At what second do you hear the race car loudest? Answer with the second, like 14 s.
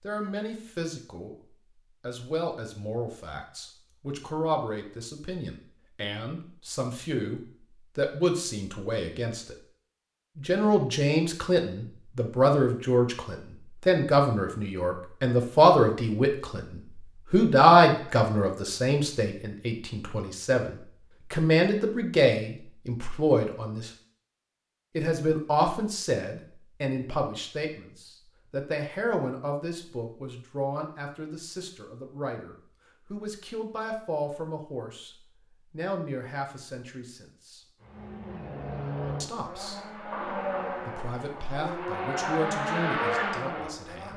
43 s.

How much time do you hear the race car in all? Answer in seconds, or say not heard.
6 s.